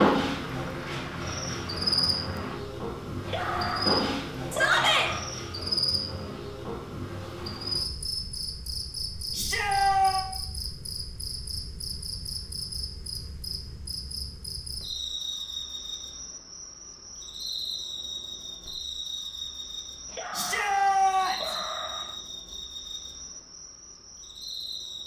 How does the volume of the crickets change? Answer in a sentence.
The loudness of the crickets goes down.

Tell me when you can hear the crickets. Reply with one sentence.
You can hear the crickets from 0.0 to 25.0 s.